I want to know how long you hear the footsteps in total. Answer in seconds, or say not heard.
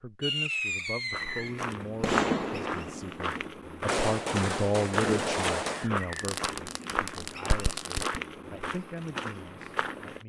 9 s.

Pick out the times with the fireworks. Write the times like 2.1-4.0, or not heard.
0.2-8.2.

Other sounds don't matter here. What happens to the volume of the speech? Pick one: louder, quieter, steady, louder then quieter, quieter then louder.
louder then quieter.